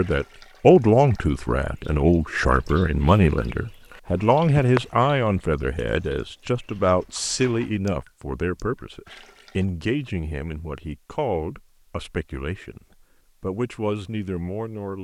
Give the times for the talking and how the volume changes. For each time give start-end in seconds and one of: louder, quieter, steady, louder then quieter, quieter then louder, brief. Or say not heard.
0.0-12.8 quieter
13.4-15.0 brief.